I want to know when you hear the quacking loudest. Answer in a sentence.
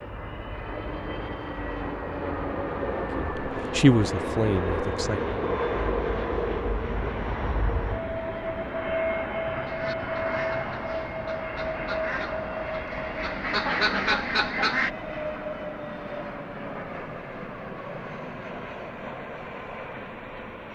The volume of the quacking peaks at 14 seconds.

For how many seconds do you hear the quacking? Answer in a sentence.
The quacking can be heard for 5 seconds in total.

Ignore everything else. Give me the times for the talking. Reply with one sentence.
The talking can be heard from 3.1 to 5.3 s.